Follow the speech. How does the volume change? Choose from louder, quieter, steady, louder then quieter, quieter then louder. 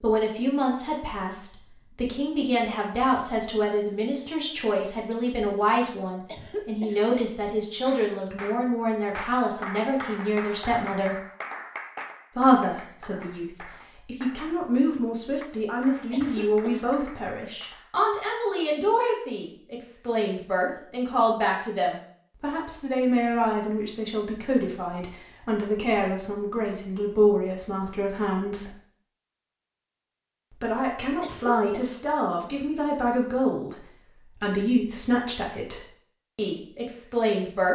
steady.